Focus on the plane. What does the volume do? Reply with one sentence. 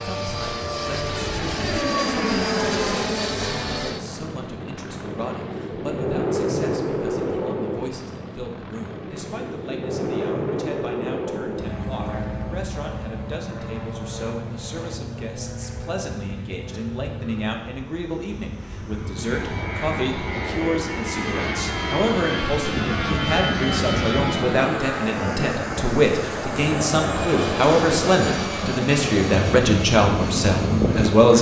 The volume of the plane goes down, then up.